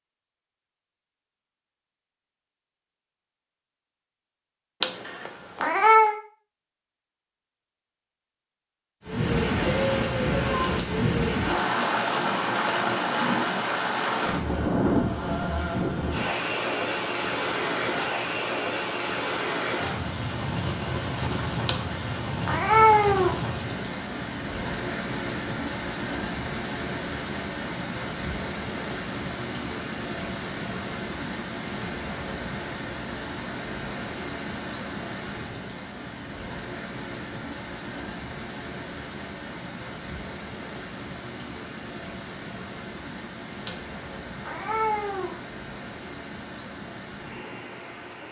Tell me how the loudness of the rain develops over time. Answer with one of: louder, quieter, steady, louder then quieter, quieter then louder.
quieter.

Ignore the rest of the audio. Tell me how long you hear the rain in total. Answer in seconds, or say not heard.
39 s.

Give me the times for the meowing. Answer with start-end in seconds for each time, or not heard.
4.8-6.2, 21.6-23.4, 43.6-45.4.